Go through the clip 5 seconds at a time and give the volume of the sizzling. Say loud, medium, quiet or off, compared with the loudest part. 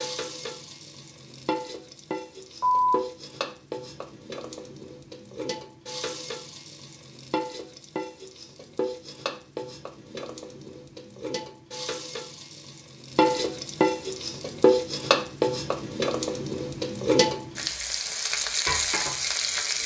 medium, medium, loud, loud.